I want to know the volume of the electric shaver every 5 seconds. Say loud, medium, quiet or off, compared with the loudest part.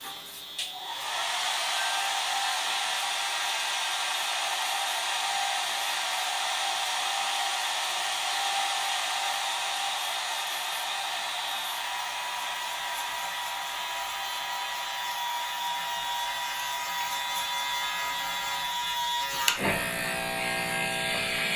quiet, quiet, medium, loud, loud.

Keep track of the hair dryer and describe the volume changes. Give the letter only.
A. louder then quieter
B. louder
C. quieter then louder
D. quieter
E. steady
D.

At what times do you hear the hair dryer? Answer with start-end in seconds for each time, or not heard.
0.0-21.5.